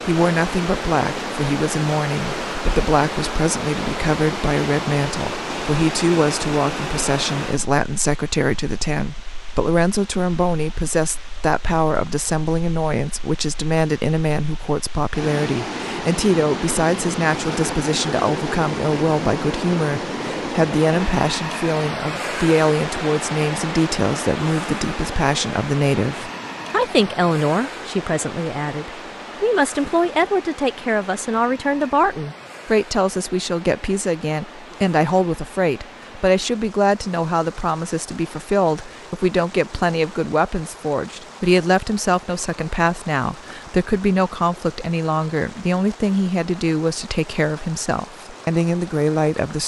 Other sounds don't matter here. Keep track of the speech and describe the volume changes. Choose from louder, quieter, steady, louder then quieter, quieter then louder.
steady.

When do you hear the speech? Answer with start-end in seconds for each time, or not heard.
0.1-49.6.